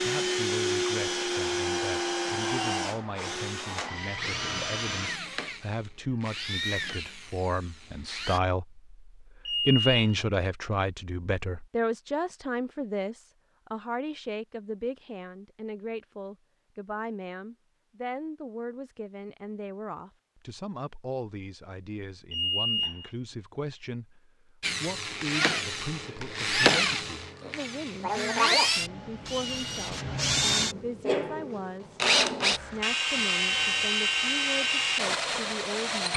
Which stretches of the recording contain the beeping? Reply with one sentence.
You can hear the beeping from 9.4 to 10.2 s and from 22.3 to 23.1 s.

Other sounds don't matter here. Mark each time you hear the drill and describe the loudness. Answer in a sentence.
The drill can be heard from 0.0 to 8.4 s, getting quieter; and from 24.6 to 36.1 s, at a steady volume.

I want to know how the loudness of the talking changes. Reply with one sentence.
The volume of the talking goes up, then down.